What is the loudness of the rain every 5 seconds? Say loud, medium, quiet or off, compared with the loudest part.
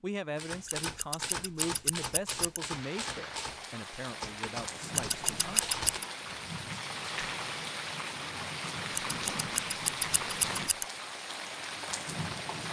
medium, loud, loud.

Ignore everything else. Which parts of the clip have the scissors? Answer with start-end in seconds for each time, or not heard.
0.7-2.6, 5.0-6.0, 8.9-10.8.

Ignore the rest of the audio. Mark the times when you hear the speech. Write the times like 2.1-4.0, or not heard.
0.0-5.6.